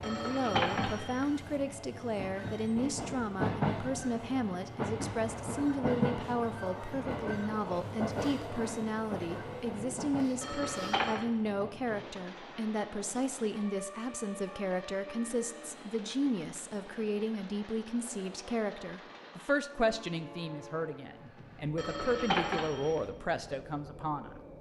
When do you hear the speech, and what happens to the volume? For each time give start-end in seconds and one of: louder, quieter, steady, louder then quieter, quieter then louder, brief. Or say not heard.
0.0-24.4 steady.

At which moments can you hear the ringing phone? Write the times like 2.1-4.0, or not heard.
0.0-1.3, 10.4-11.2, 21.8-23.1.